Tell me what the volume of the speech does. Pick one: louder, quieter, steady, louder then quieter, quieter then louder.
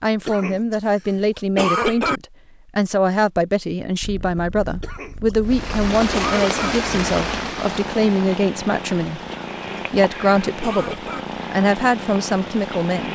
steady.